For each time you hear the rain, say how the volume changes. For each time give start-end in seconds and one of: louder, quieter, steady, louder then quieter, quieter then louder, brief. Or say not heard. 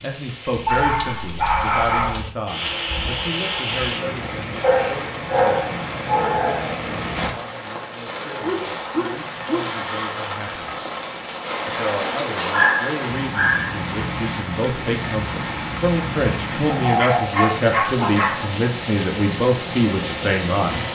0.0-20.8 steady.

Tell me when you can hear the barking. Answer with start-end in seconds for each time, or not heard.
0.7-2.2, 4.6-6.8, 8.4-9.7, 12.5-13.7, 16.7-18.6.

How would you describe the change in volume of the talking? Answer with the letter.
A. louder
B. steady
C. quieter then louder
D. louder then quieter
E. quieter
C.